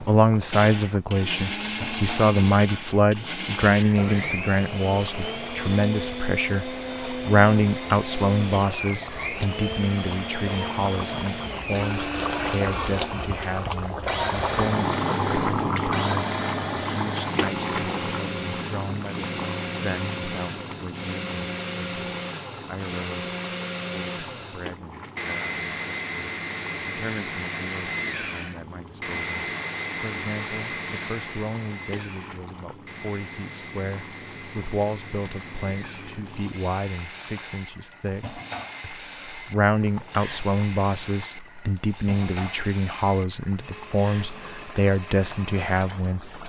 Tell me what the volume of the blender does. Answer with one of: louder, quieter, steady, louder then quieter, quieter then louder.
quieter.